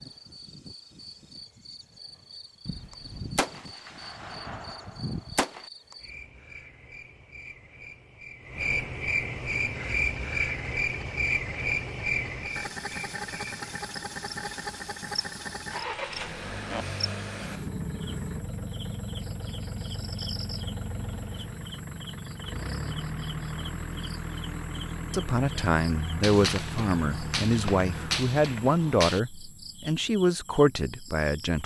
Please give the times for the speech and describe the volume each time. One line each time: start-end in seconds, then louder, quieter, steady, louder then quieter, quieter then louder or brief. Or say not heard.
25.1-31.6 steady.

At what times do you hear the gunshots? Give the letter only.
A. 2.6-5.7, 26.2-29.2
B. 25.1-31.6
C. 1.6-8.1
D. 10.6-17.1
A.